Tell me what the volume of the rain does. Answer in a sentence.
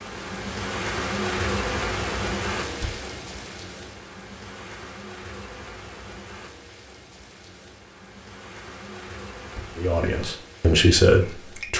The volume of the rain goes down.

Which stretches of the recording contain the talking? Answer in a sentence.
The talking can be heard from 9.8 to 11.7 s.